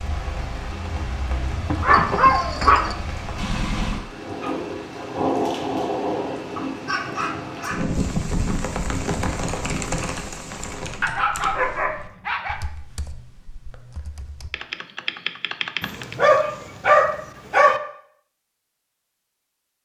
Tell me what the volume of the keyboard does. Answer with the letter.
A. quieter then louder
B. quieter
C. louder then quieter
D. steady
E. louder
A.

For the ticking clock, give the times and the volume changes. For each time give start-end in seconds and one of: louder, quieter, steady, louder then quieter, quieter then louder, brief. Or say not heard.
not heard.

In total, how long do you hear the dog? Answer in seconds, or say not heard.
6 s.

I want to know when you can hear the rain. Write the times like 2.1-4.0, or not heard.
0.0-11.1.